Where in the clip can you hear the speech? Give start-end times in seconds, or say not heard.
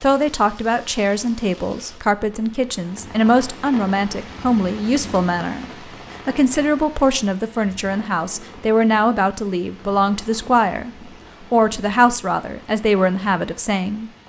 0.0-5.7, 6.2-10.9, 11.5-14.1.